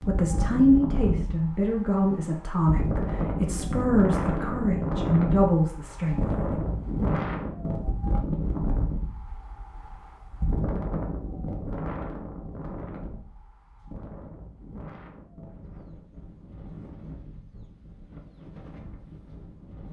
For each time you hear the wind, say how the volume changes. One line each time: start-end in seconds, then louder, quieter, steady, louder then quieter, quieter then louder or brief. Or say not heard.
0.0-19.8 quieter.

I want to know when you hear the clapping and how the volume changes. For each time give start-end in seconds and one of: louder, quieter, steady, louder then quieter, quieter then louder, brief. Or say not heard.
not heard.